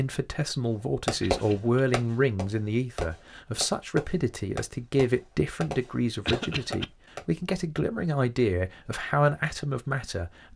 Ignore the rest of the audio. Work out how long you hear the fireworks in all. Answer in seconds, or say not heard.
6 s.